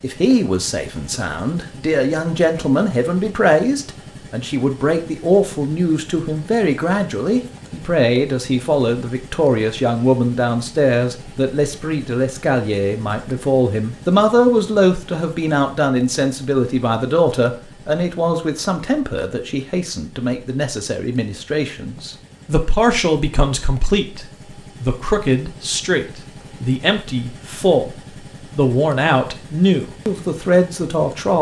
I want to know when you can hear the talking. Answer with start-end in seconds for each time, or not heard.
0.0-31.3.